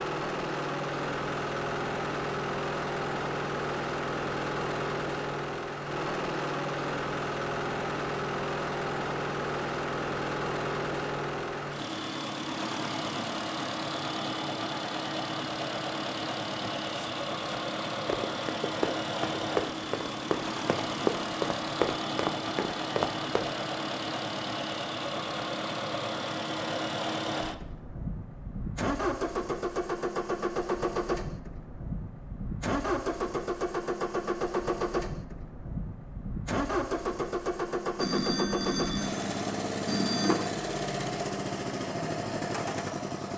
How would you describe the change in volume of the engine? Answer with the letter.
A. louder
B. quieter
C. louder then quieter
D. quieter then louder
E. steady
E.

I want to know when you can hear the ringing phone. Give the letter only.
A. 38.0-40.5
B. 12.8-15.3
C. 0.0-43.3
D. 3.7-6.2
A.